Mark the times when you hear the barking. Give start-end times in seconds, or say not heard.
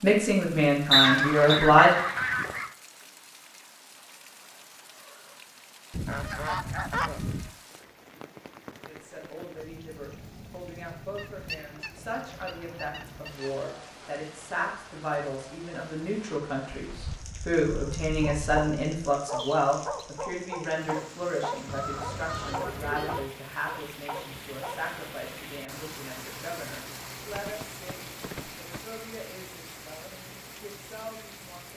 18.2-24.8.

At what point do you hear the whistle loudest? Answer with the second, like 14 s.
1 s.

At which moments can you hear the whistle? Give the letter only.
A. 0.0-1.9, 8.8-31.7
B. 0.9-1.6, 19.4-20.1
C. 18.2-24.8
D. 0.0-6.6
B.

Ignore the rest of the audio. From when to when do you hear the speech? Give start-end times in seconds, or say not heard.
0.0-1.9, 8.8-31.7.